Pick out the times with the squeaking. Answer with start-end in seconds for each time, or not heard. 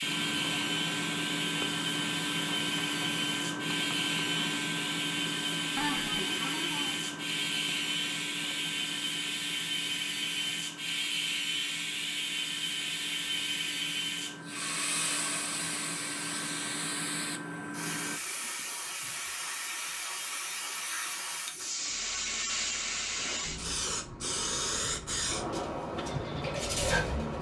5.8-7.0.